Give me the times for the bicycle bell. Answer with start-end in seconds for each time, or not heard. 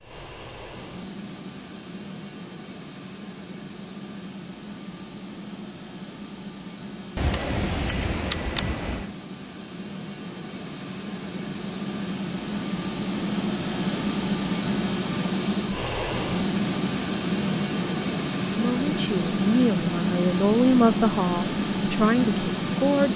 7.2-9.1.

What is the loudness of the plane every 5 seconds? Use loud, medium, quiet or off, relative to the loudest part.
quiet, quiet, loud, loud, loud.